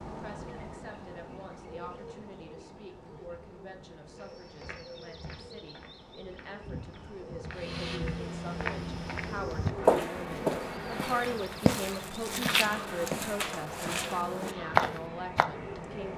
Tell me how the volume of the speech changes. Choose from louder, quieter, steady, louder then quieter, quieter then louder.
louder.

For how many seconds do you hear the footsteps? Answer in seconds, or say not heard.
11 s.